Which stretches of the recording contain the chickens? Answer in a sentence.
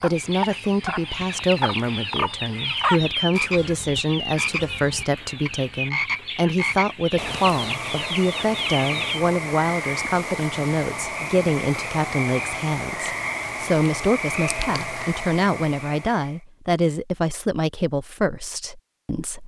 You can hear the chickens from 0.1 to 9.2 s.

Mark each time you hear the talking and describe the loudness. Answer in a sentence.
The talking can be heard from 0.0 to 19.4 s, at a steady volume.